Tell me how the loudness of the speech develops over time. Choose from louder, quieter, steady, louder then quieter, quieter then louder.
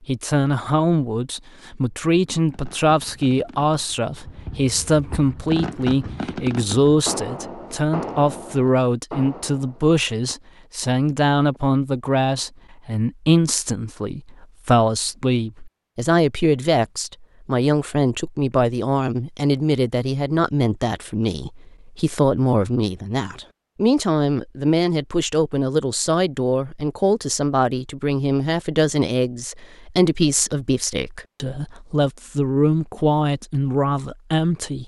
steady.